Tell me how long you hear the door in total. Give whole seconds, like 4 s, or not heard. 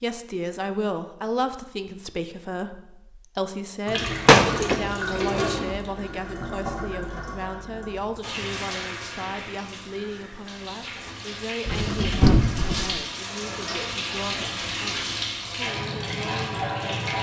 3 s.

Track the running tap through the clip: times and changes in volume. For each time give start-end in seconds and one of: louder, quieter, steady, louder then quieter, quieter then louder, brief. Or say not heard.
3.9-17.1 quieter then louder.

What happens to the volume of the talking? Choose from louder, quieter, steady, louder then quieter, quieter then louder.
quieter.